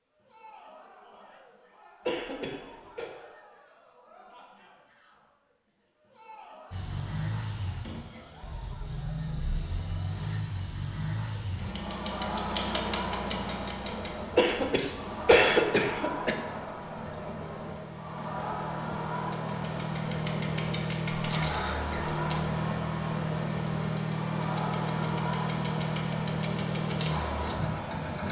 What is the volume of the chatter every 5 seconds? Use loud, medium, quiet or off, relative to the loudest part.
quiet, quiet, loud, loud, loud, loud.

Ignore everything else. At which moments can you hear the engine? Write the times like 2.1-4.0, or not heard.
6.7-28.2.